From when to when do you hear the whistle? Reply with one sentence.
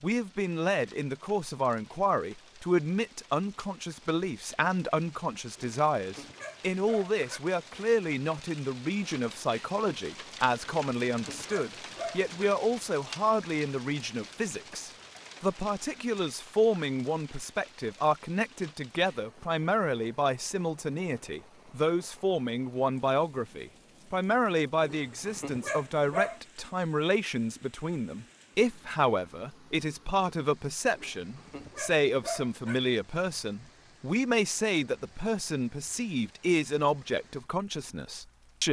The whistle can't be heard in this clip.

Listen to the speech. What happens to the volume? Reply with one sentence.
The loudness of the speech stays about the same.